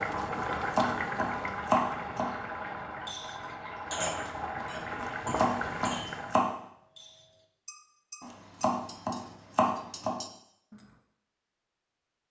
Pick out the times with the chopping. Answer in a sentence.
You can hear the chopping from 0.3 to 2.4 s, from 5.0 to 6.5 s and from 8.2 to 10.2 s.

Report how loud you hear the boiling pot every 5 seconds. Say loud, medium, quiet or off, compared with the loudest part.
loud, loud, off.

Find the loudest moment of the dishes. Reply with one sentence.
The loudest moment of the dishes is at 4 seconds.